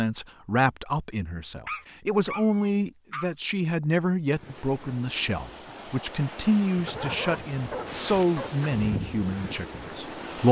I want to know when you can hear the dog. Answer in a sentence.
The dog can be heard from 1.6 to 3.3 s and from 6.8 to 8.6 s.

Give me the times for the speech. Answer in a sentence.
The speech can be heard from 0.0 to 10.4 s.